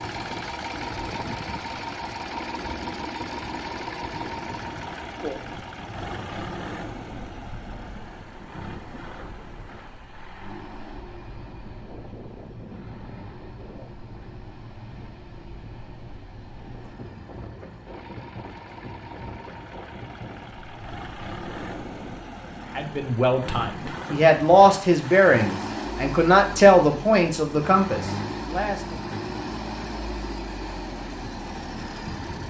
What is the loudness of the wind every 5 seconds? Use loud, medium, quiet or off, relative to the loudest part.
loud, loud, loud, loud, loud, off, off.